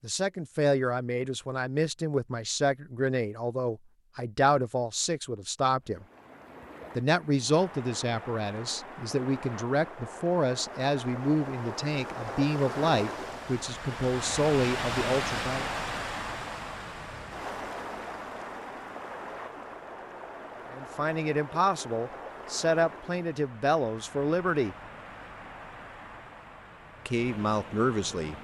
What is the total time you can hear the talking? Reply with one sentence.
You can hear the talking for 20 seconds altogether.